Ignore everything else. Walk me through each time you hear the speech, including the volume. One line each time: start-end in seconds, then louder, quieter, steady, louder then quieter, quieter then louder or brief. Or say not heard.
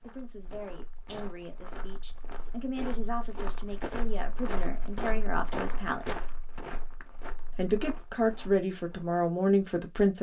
0.0-6.3 louder
7.5-10.1 brief.